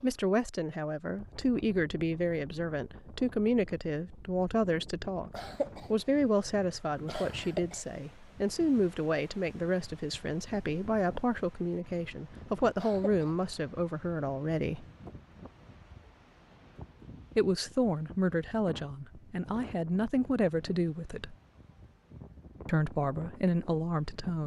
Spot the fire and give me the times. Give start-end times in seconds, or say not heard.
not heard.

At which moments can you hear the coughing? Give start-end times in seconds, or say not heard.
5.3-6.0, 7.0-7.8, 12.8-13.4.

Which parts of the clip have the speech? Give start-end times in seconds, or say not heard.
0.0-14.8, 17.4-21.4, 22.6-24.4.